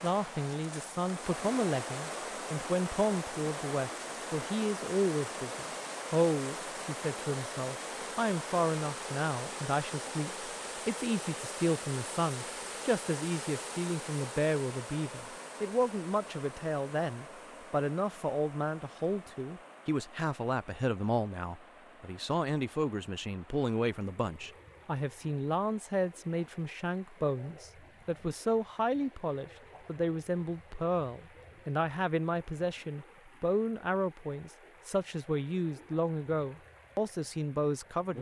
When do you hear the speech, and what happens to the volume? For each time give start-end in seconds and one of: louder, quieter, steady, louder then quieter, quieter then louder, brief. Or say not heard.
0.0-38.1 steady.